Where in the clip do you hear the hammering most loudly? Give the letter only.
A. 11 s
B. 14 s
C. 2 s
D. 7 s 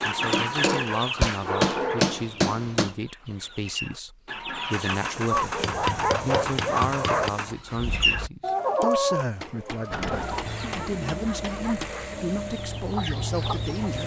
C.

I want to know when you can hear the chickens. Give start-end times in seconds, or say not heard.
0.0-5.2, 7.7-10.8, 12.4-14.0.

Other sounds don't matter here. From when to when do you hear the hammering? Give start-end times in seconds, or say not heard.
0.3-3.0, 5.3-7.3, 9.4-12.1.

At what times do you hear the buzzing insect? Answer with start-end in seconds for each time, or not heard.
not heard.